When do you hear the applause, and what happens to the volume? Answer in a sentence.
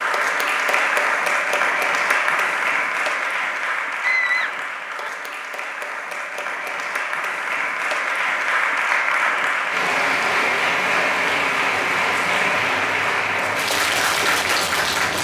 The applause can be heard from 0.0 to 15.1 s, getting quieter then louder.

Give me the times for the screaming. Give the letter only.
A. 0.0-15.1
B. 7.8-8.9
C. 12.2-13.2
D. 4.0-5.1
D.